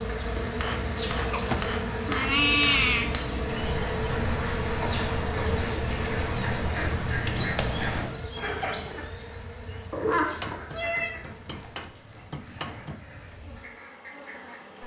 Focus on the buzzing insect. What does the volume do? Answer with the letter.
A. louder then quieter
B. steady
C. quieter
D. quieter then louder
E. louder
C.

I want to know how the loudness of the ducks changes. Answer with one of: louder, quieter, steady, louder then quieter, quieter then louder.
quieter.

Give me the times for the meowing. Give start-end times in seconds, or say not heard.
1.3-3.1, 6.2-8.3, 9.9-11.1.